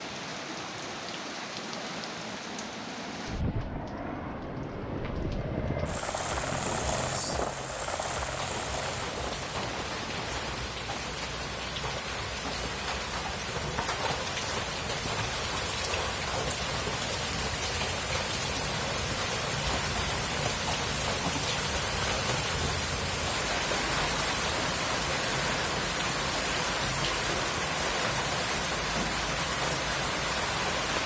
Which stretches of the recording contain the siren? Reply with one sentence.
The siren can't be heard in this clip.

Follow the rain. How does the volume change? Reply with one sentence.
The loudness of the rain goes up.